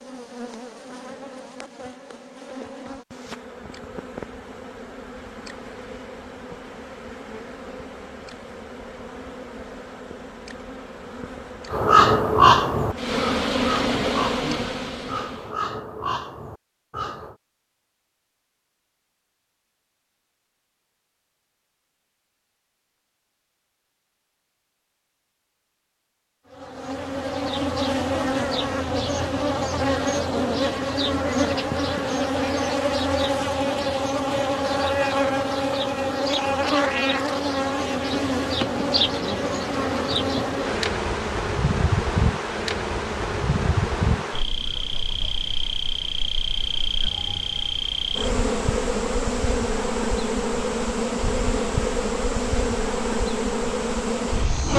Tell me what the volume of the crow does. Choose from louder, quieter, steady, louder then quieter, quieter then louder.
quieter.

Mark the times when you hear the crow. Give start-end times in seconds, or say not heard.
11.7-17.4.